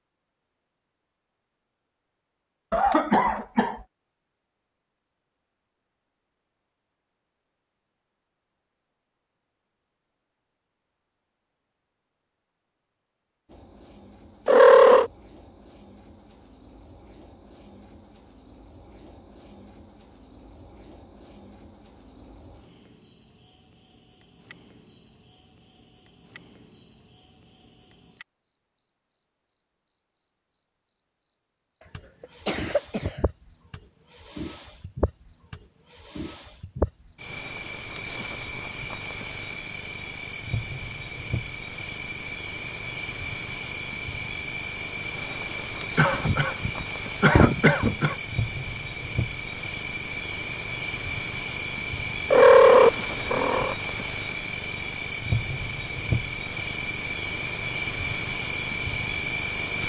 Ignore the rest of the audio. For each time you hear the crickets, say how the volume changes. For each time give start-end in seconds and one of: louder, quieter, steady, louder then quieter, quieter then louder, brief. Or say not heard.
13.5-59.8 louder.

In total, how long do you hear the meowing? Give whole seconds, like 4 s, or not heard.
2 s.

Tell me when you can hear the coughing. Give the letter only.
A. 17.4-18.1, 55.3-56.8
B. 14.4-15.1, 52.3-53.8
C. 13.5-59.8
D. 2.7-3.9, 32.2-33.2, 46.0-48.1
D.